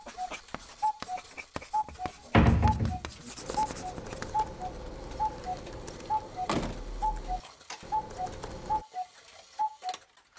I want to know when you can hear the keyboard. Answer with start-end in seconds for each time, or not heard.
2.0-8.8.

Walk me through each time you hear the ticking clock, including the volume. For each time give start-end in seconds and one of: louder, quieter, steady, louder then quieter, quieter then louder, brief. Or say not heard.
0.0-10.3 steady.